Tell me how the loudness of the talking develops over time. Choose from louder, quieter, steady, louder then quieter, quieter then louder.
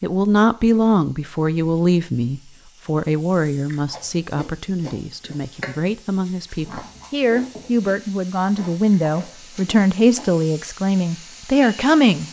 quieter then louder.